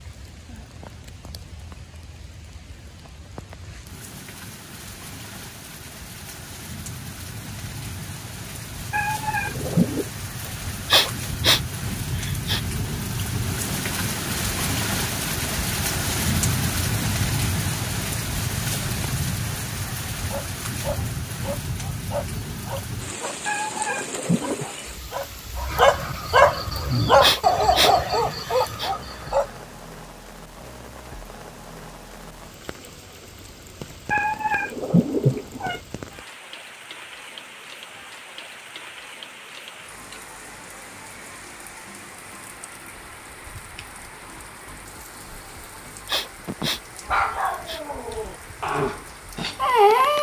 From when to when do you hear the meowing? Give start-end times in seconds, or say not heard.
8.9-10.1, 23.4-24.6, 34.1-35.8.